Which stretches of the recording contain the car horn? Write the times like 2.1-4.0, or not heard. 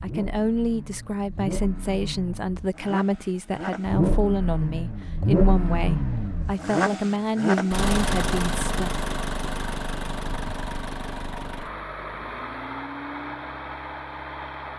not heard.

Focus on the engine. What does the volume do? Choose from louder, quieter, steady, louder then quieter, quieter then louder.
louder then quieter.